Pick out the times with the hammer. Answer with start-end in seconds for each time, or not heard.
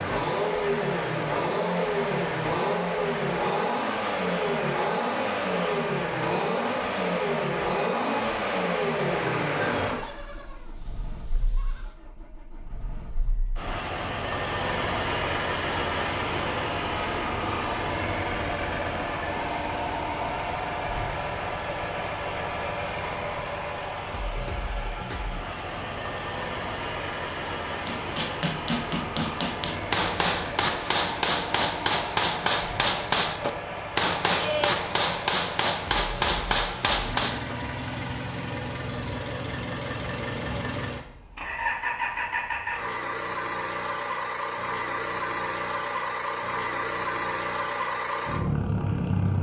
27.9-37.5.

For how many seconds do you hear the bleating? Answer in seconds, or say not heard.
3 s.